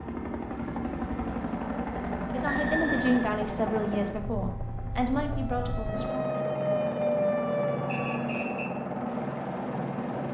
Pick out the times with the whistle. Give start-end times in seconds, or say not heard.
2.5-3.3, 7.8-8.7.